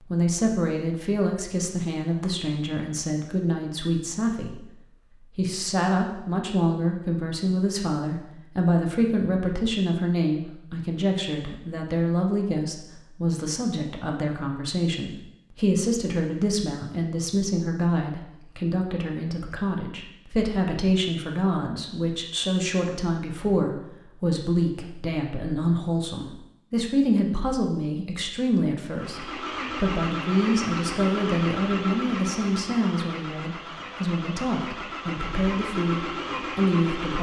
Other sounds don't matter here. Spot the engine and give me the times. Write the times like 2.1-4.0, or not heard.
28.9-37.1.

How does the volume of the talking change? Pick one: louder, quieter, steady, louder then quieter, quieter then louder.
steady.